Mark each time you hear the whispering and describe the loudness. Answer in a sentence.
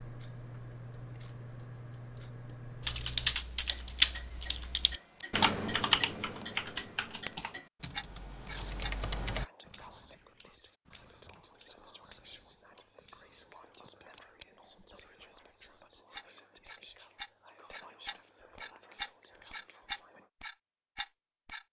You can hear the whispering from 8.5 to 20.3 s, at a steady volume.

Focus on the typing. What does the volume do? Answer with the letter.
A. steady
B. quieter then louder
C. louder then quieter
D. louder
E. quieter
E.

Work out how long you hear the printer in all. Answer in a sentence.
You can't hear the printer here.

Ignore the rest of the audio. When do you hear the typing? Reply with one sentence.
The typing can be heard from 2.9 to 9.4 s.